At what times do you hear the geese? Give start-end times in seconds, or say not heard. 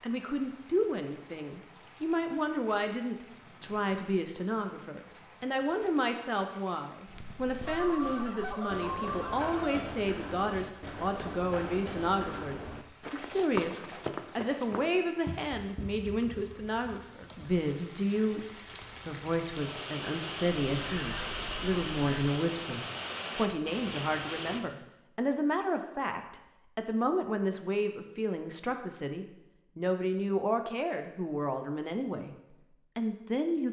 7.7-9.8, 20.7-22.1.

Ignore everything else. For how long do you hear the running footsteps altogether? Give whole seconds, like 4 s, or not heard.
9 s.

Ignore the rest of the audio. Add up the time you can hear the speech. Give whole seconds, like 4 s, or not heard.
33 s.